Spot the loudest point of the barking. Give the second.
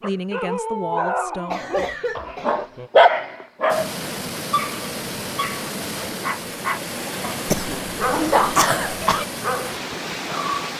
3 s.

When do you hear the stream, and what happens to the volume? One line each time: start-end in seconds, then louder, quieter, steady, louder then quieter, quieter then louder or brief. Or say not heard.
3.6-10.7 steady.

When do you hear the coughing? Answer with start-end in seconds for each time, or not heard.
1.5-2.9, 7.5-9.2.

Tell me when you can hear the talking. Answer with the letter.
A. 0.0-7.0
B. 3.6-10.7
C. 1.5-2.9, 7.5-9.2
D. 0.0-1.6
D.